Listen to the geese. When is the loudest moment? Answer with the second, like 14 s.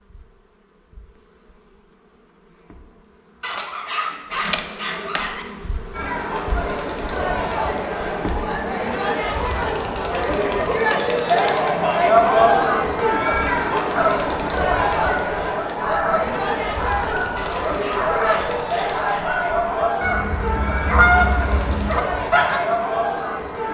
21 s.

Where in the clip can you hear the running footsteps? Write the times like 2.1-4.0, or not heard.
not heard.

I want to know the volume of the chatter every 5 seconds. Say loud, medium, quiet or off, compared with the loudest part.
off, medium, loud, medium, medium.